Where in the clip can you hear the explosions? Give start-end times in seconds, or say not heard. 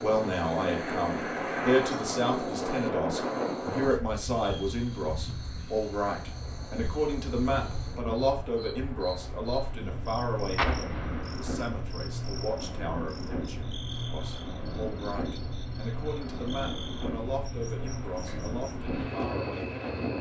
10.6-11.7.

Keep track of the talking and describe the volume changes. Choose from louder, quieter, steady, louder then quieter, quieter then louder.
quieter.